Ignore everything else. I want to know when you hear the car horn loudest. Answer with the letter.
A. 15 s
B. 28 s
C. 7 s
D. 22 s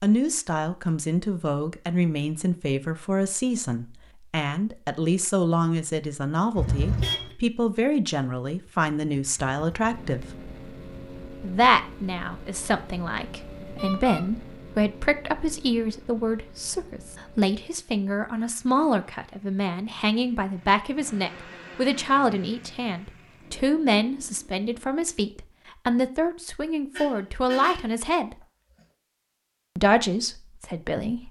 C.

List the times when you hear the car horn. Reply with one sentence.
You can hear the car horn from 6.5 to 7.3 s, from 13.8 to 14.2 s and from 26.9 to 27.9 s.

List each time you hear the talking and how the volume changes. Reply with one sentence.
You can hear the talking from 0.0 to 10.2 s, at a steady volume; from 11.4 to 28.4 s, at a steady volume; and briefly from 29.8 to 31.2 s.